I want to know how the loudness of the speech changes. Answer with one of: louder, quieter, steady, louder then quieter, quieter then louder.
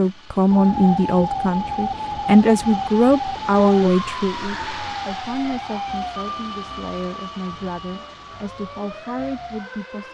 quieter.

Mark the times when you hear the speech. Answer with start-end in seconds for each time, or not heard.
0.0-10.0.